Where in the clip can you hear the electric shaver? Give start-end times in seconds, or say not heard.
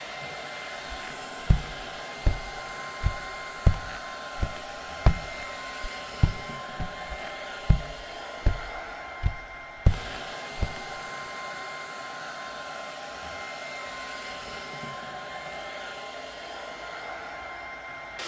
not heard.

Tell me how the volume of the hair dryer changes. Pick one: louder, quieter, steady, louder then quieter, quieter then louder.
steady.